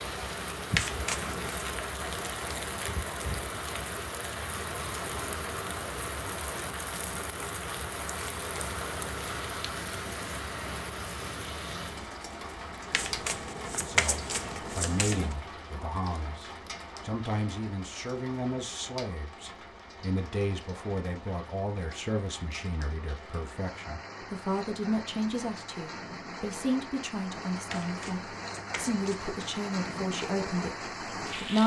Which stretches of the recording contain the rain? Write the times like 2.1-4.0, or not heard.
0.0-31.6.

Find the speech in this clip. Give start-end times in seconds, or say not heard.
13.8-31.6.